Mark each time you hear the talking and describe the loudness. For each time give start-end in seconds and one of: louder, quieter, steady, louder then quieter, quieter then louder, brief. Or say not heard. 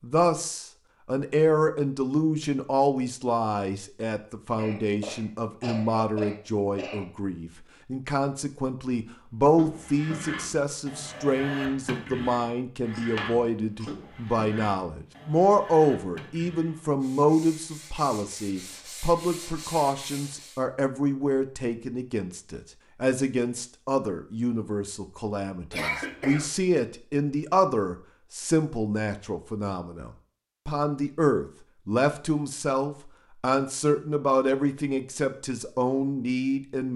0.0-36.9 steady.